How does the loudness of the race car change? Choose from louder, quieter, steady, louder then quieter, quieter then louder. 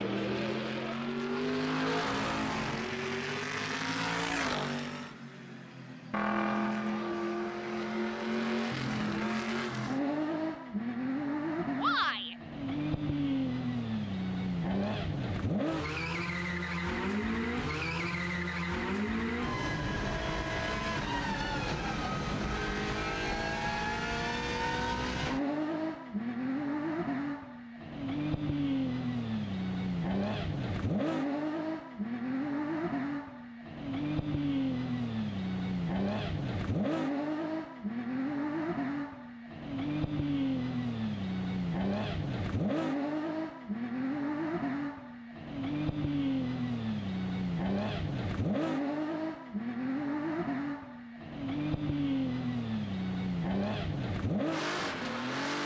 steady.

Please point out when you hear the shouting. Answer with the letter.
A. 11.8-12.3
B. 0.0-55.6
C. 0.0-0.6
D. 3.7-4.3
A.